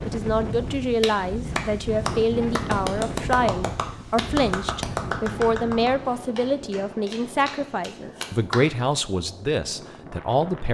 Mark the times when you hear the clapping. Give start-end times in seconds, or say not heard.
1.0-8.7.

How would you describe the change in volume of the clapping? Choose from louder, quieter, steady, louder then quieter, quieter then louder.
quieter.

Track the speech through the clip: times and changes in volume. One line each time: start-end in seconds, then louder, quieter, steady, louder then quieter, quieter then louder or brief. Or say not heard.
0.0-10.7 steady.